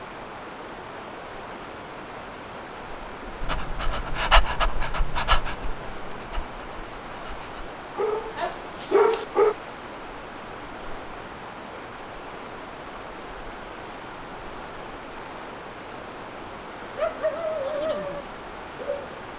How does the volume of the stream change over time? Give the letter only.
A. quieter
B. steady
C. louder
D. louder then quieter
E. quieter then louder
B.